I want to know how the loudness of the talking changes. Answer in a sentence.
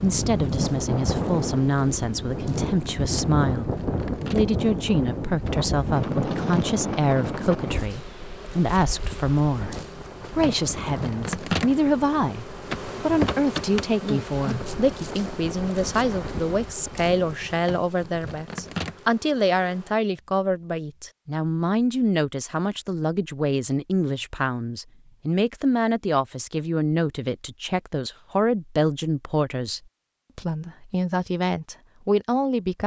The volume of the talking stays about the same.